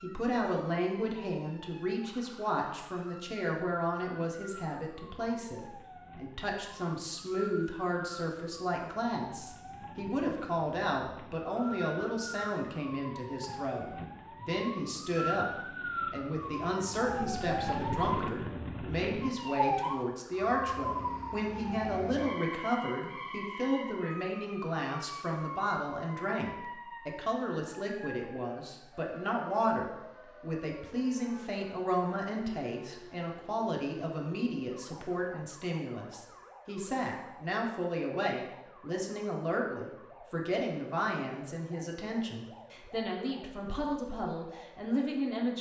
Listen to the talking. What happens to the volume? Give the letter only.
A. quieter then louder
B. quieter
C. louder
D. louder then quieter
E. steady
E.